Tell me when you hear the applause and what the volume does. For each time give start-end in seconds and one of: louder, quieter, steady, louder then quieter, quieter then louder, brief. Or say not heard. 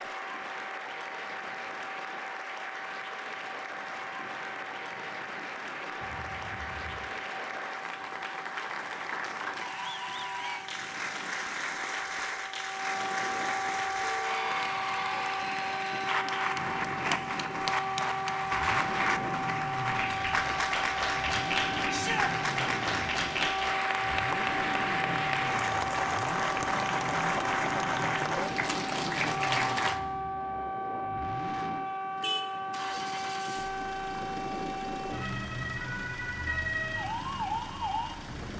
0.0-30.0 louder.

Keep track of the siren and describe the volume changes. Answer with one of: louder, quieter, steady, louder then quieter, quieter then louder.
louder.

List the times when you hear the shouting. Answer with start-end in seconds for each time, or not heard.
21.9-22.3.